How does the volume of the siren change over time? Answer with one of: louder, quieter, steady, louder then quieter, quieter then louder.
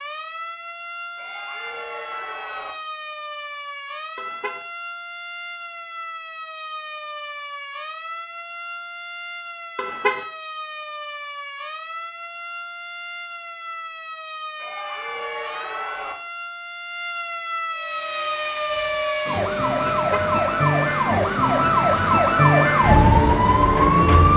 louder.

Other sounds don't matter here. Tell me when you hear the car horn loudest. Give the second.
10 s.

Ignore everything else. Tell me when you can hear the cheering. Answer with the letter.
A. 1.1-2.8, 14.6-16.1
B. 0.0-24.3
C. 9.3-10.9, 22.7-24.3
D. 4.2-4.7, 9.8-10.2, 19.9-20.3
A.